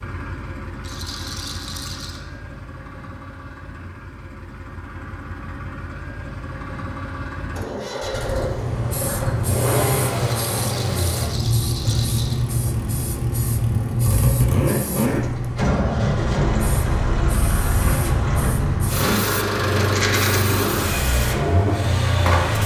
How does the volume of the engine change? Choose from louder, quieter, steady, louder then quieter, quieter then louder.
louder.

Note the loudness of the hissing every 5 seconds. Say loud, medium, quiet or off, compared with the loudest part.
off, loud, loud, loud, loud.